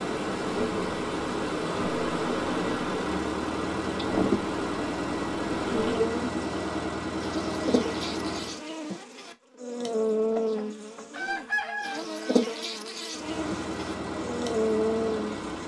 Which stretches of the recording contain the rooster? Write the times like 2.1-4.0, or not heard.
10.3-12.3.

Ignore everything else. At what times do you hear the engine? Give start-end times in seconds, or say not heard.
0.0-8.6, 13.1-15.6.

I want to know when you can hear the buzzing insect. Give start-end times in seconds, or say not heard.
0.0-15.6.